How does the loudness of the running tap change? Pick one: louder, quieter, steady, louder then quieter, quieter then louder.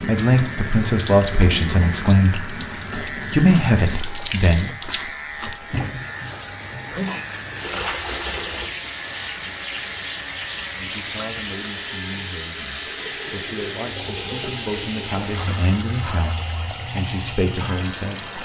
steady.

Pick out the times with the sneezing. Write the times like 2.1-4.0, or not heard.
6.9-7.8.